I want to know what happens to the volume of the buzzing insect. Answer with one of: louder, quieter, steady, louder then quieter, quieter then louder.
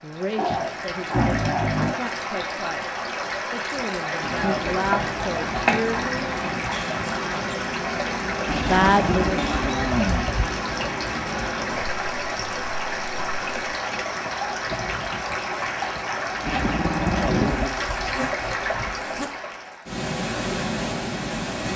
quieter then louder.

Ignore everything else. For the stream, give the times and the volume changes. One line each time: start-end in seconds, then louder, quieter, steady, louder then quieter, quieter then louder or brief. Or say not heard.
0.0-21.7 steady.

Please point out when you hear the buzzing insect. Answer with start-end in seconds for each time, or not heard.
4.2-19.3.